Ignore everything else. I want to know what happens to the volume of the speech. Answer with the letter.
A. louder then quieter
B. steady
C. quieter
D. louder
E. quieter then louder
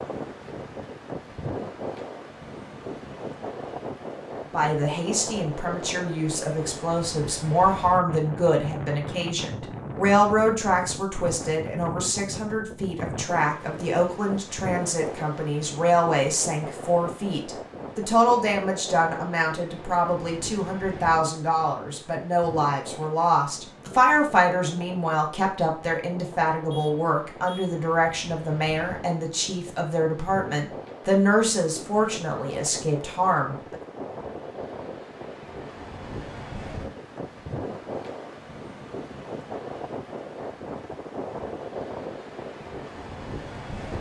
B.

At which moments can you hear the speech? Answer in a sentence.
The speech can be heard from 4.5 to 33.8 s.